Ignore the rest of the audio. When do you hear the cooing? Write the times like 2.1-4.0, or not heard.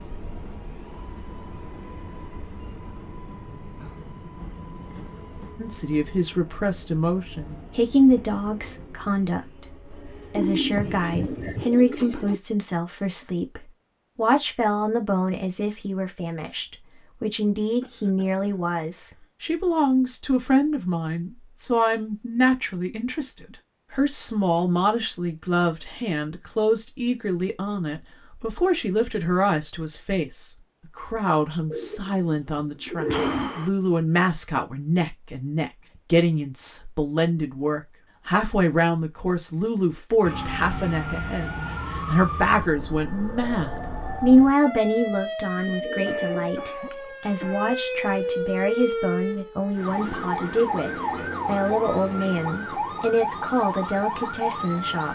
10.3-12.3, 31.7-33.7, 45.5-47.0.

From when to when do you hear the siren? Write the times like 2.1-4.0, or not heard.
40.2-55.1.